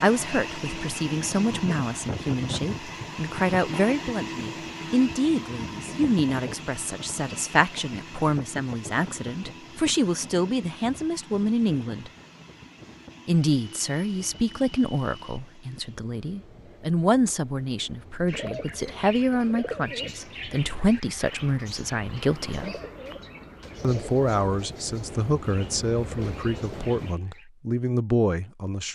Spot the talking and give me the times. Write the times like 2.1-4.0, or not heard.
0.0-12.1, 13.2-22.8, 23.8-28.9.